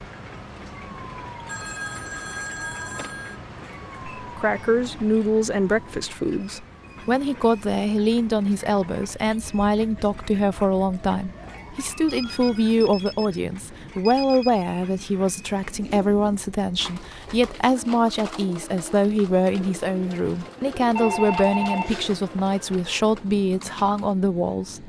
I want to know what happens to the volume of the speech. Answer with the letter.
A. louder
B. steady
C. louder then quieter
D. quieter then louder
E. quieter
B.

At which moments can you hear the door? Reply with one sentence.
You can't hear the door here.